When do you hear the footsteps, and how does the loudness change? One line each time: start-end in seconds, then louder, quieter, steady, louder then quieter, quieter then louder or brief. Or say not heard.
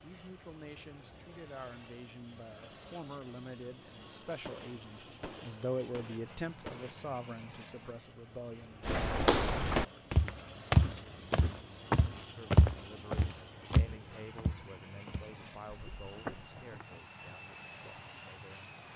8.8-16.6 quieter.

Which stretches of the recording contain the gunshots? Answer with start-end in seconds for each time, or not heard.
4.5-7.2.